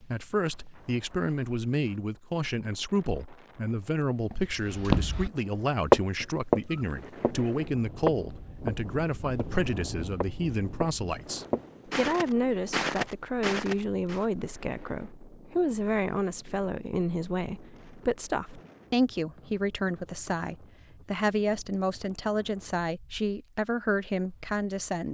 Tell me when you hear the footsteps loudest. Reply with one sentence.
The loudest moment of the footsteps is at 6 seconds.